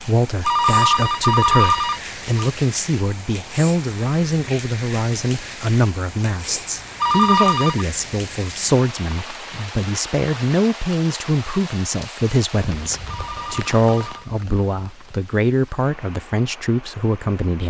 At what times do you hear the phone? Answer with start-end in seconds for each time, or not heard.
0.5-2.5, 7.0-7.8, 13.1-14.3.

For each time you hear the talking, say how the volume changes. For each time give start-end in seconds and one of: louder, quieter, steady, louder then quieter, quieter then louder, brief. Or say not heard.
0.0-17.6 steady.